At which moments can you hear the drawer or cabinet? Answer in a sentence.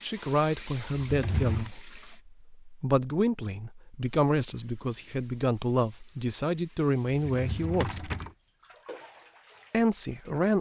You can hear the drawer or cabinet from 1.0 to 1.7 s and from 7.2 to 8.3 s.